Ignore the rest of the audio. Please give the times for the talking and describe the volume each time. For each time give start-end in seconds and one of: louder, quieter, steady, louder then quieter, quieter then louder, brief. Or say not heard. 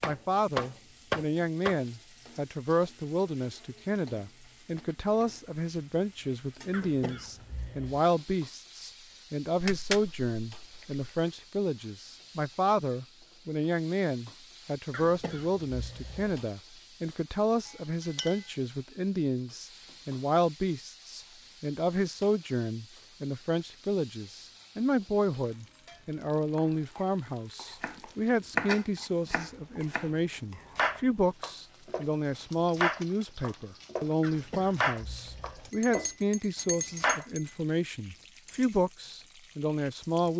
0.0-40.3 steady.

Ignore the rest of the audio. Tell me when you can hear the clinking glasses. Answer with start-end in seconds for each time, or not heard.
9.6-11.2, 17.6-18.4, 35.7-37.5.